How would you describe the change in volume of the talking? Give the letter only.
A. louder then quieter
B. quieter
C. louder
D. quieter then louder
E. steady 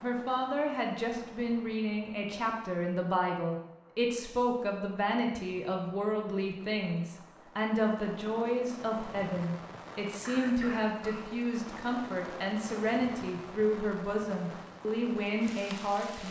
E.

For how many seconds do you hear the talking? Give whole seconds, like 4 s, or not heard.
16 s.